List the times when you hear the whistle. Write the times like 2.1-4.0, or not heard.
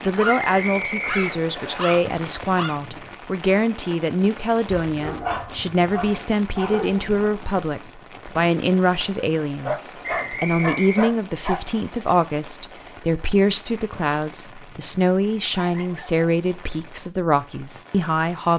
0.2-1.8, 10.0-11.1.